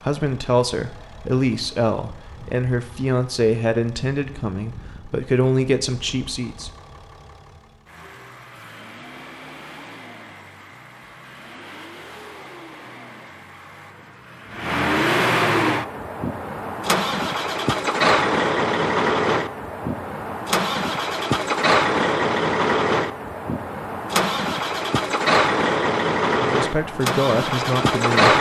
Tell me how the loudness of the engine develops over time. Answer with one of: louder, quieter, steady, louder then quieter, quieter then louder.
louder.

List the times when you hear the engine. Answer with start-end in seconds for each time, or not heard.
0.0-28.3.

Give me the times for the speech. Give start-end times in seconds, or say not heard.
0.0-6.7, 26.4-28.3.